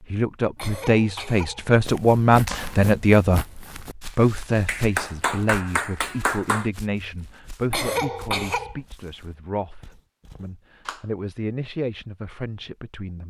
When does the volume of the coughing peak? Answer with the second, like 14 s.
8 s.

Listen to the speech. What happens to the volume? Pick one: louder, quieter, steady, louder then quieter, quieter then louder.
quieter.